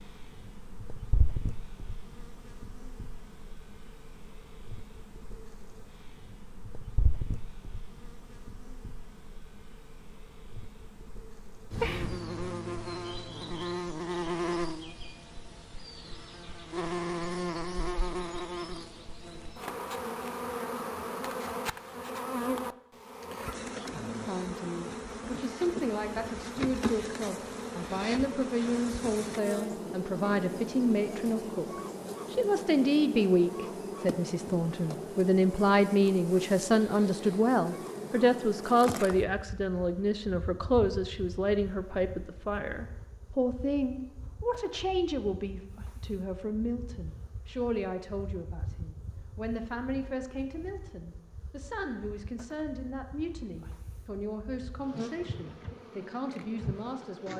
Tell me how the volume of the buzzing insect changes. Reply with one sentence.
The loudness of the buzzing insect goes up, then down.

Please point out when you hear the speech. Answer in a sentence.
You can hear the speech from 24.1 to 57.3 s.